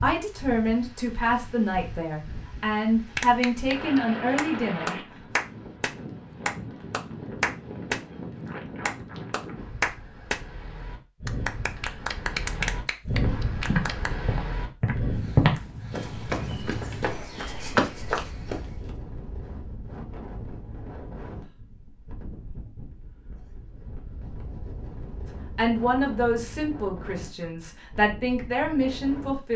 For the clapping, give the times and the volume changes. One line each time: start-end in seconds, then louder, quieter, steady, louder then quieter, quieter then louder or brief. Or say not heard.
3.1-8.0 louder
8.8-10.4 brief
11.2-14.1 brief.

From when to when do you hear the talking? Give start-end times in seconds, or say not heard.
0.0-5.0, 25.6-29.5.